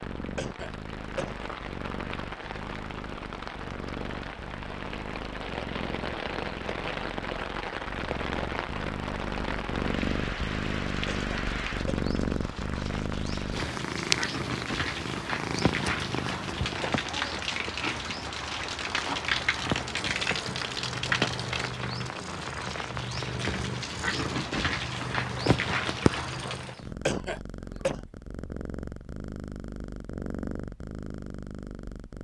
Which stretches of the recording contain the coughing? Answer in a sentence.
You can hear the coughing from 0.3 to 1.5 s, from 11.1 to 12.1 s and from 27.1 to 28.0 s.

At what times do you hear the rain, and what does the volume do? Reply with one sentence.
The rain can be heard from 0.0 to 26.9 s, getting louder.